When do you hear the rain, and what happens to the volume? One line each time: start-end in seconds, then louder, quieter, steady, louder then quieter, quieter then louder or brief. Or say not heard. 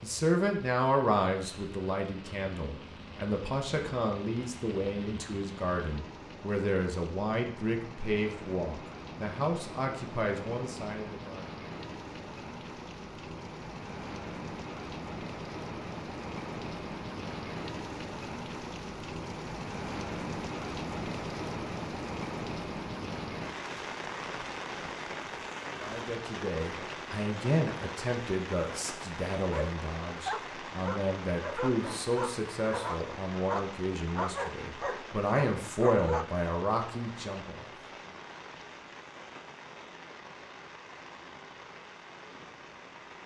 0.0-43.2 louder then quieter.